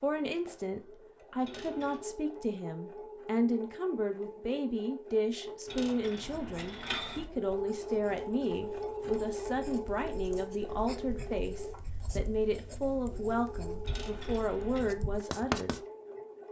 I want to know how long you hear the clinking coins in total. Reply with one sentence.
The clinking coins can be heard for 3 seconds in total.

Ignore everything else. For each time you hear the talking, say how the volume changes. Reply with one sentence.
The talking can be heard from 0.0 to 15.8 s, at a steady volume.